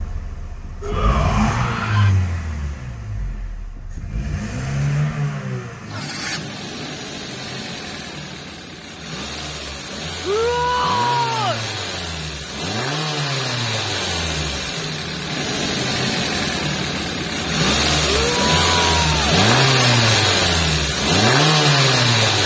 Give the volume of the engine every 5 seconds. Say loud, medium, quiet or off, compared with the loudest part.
medium, quiet, medium, loud, loud.